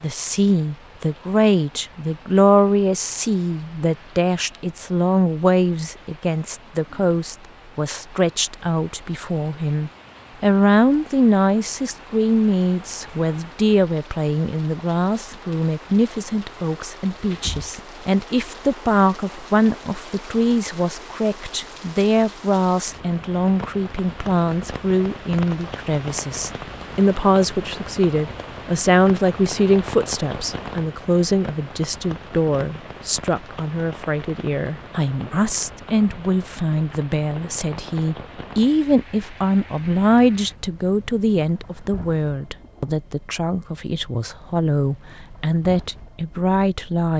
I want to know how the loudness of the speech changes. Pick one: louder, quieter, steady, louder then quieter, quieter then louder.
steady.